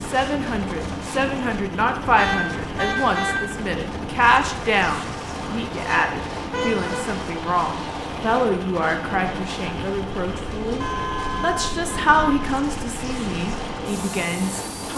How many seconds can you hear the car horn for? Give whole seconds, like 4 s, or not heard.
4 s.